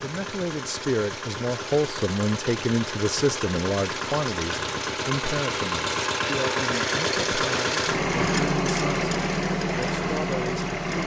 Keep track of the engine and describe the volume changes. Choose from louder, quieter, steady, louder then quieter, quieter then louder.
louder.